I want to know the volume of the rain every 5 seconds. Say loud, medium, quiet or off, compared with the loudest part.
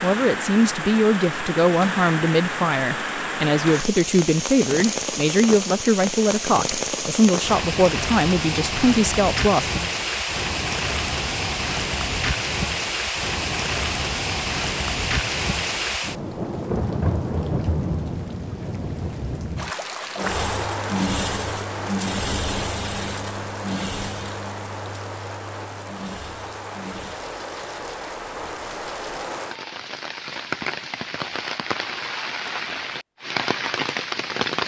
loud, loud, loud, loud, medium, medium, loud.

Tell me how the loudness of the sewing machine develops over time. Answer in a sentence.
The volume of the sewing machine goes down.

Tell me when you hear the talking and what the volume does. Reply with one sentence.
You can hear the talking from 0.0 to 9.8 s, at a steady volume.